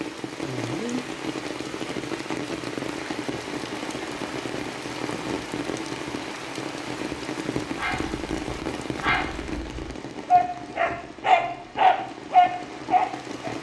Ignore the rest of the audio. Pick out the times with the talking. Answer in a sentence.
The talking can't be heard in this clip.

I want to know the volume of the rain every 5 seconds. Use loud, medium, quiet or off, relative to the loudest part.
loud, loud, medium.